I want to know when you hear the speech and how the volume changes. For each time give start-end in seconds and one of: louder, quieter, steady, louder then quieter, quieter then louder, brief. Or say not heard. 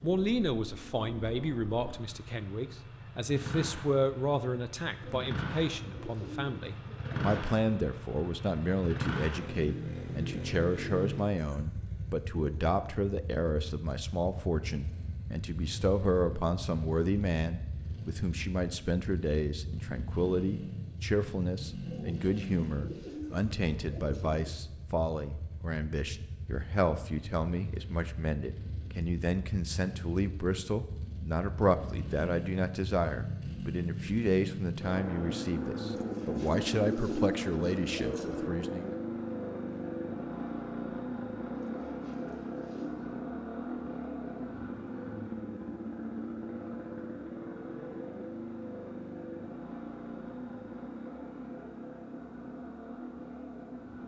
0.0-39.0 steady.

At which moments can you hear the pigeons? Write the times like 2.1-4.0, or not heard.
5.0-7.5, 21.9-24.4, 35.9-38.5, 41.5-43.1.